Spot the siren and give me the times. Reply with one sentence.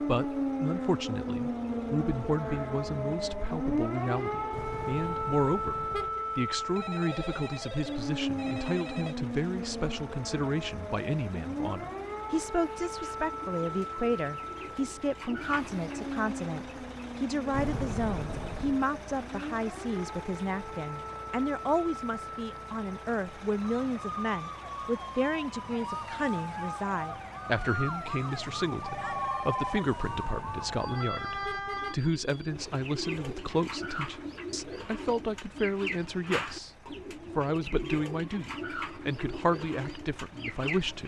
You can hear the siren from 0.0 to 31.9 s.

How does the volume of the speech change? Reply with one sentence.
The loudness of the speech stays about the same.